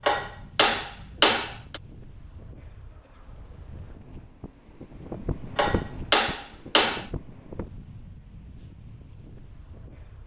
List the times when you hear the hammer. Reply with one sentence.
The hammer can be heard from 0.1 to 1.8 s and from 5.5 to 7.0 s.